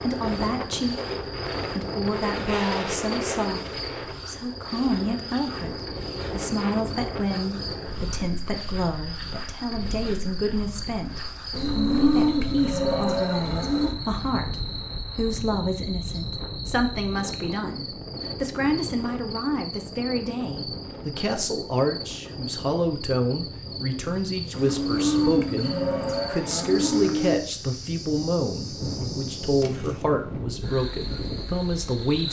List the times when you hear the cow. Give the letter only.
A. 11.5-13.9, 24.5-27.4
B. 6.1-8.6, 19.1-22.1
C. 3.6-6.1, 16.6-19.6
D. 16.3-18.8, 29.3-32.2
A.